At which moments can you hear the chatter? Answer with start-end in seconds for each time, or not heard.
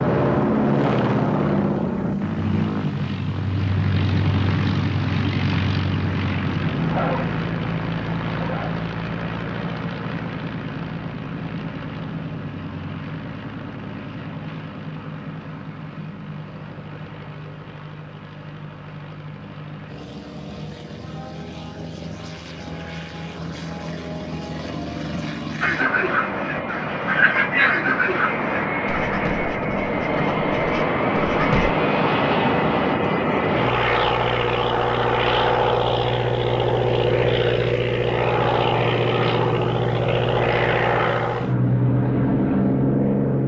not heard.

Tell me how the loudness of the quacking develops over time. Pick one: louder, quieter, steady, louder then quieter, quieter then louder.
louder then quieter.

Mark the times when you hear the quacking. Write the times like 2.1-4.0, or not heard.
25.6-31.8.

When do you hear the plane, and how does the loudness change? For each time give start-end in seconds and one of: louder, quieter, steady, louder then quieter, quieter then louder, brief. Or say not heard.
0.0-43.4 quieter then louder.